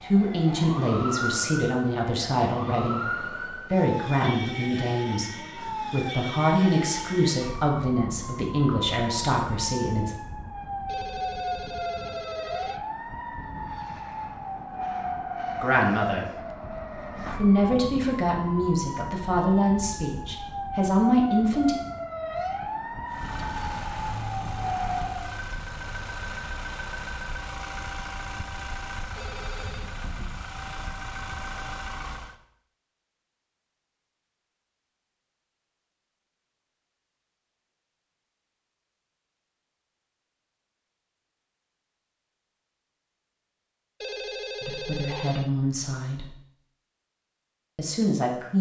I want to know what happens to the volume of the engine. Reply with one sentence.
The volume of the engine stays about the same.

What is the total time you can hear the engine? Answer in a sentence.
The engine can be heard for 9 seconds in total.